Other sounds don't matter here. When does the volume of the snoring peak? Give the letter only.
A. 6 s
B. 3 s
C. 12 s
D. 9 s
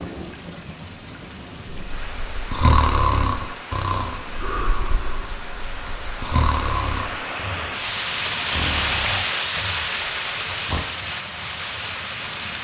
B.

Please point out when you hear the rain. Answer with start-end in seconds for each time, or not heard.
0.0-12.6.